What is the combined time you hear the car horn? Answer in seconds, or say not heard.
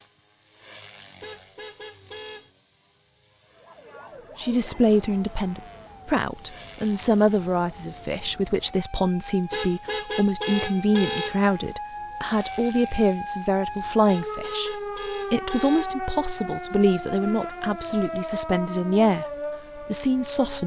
5 s.